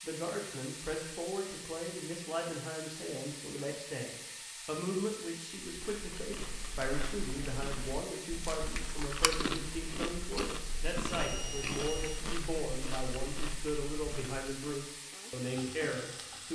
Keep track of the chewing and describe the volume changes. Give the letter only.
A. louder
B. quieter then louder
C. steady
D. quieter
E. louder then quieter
E.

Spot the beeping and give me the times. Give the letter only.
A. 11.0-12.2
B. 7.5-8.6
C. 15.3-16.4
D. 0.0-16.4
A.